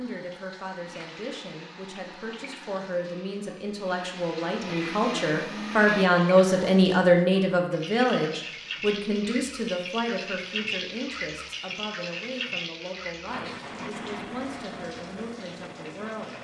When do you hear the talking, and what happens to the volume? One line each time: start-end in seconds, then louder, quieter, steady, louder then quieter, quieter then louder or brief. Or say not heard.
0.0-16.3 louder then quieter.